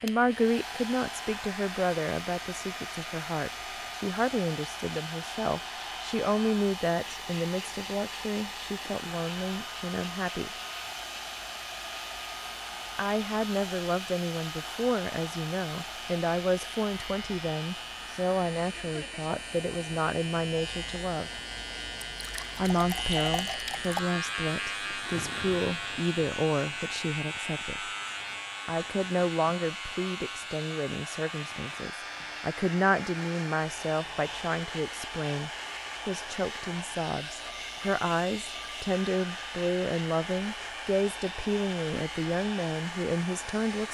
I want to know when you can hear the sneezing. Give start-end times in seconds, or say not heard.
not heard.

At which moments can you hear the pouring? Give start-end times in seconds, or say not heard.
22.0-24.0.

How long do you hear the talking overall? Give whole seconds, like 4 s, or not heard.
39 s.